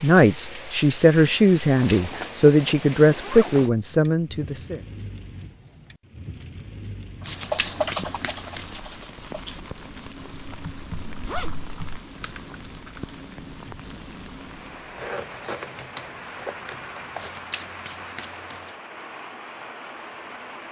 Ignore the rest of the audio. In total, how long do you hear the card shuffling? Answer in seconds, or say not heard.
4 s.